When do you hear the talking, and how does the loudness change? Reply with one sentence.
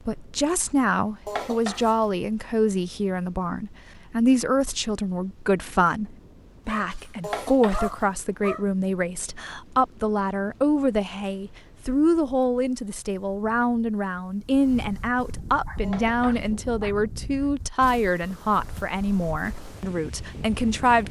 You can hear the talking from 0.1 to 21.0 s, at a steady volume.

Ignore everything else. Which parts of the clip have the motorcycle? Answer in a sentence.
The motorcycle can't be heard in this clip.